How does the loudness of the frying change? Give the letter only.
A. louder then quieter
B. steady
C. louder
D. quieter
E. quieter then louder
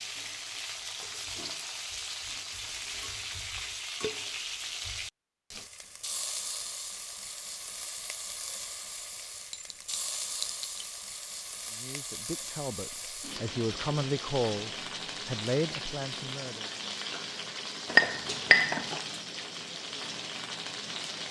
B.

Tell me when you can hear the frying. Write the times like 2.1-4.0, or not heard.
0.0-21.2.